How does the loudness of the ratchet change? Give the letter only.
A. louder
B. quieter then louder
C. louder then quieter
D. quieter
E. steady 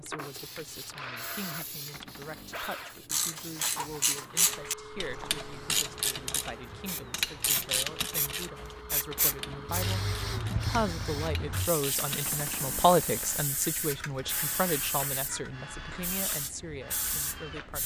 D.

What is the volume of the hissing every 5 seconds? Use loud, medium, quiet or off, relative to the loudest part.
medium, loud, loud, loud.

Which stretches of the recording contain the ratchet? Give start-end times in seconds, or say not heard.
3.0-12.3.